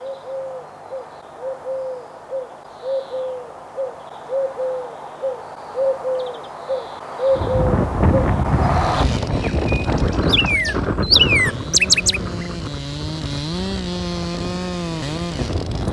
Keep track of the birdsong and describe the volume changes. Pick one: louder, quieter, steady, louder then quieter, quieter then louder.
louder.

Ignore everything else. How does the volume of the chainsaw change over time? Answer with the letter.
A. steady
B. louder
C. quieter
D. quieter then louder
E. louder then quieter
D.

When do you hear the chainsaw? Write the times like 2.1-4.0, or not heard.
8.6-15.8.